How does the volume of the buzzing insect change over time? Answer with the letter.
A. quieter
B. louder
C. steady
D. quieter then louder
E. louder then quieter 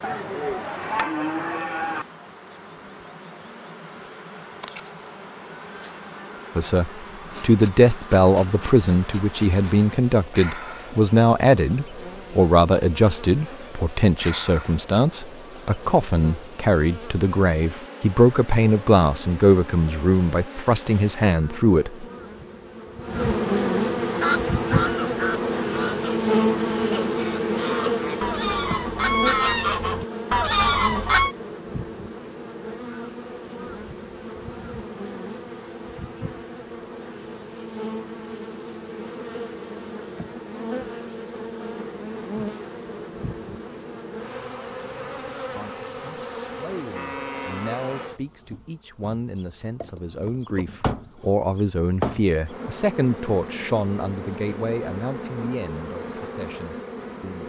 E.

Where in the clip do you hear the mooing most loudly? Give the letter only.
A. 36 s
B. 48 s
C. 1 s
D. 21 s
C.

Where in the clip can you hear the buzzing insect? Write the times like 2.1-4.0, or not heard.
0.0-57.4.